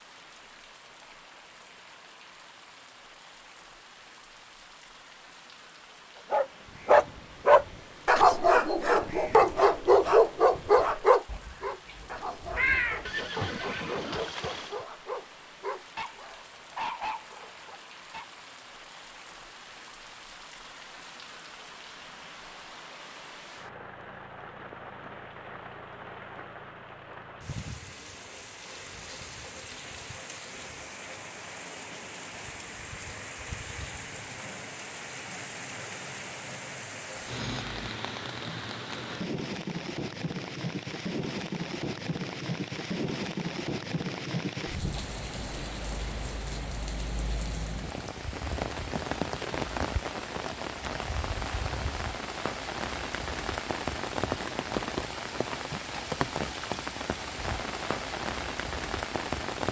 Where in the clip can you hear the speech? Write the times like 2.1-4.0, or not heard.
not heard.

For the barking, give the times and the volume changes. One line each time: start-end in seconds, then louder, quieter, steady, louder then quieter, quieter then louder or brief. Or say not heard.
6.3-18.3 quieter.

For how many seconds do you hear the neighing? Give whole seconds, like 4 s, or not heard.
2 s.